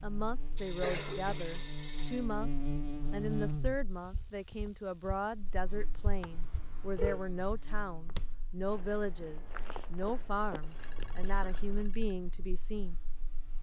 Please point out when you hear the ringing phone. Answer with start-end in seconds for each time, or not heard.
0.6-2.2, 6.2-7.2, 10.5-12.2.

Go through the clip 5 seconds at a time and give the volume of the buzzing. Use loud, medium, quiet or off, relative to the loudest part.
loud, quiet, quiet.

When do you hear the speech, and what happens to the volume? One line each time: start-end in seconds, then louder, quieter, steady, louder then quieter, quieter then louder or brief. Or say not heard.
0.0-12.9 steady.